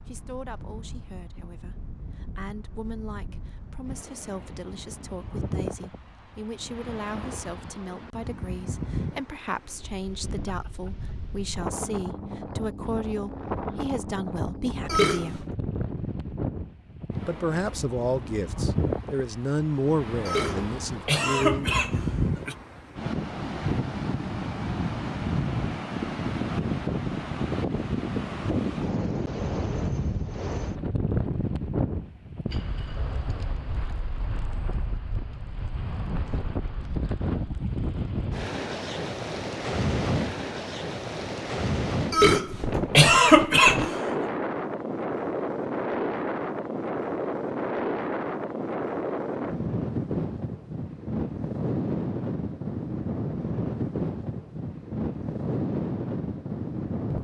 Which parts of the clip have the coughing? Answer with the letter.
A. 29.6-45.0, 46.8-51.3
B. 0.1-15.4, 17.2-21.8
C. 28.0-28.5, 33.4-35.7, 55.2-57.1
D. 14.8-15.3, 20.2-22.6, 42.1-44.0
D.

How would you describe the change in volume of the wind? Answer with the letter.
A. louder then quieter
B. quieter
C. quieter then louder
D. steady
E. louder
E.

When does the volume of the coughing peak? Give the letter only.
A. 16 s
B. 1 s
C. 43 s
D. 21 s
C.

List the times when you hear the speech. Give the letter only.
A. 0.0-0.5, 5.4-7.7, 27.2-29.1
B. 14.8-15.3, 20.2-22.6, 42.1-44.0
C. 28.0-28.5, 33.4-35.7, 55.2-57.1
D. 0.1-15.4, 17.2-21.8
D.